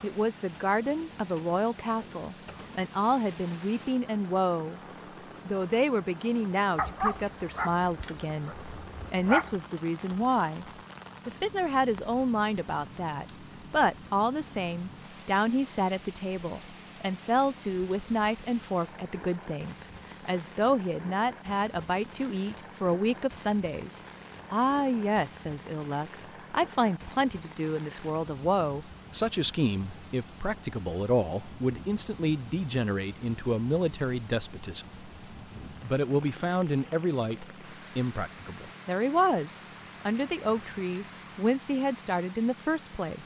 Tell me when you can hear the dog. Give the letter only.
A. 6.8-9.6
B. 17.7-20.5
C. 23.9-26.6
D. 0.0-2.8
A.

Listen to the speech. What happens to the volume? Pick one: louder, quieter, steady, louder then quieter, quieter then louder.
steady.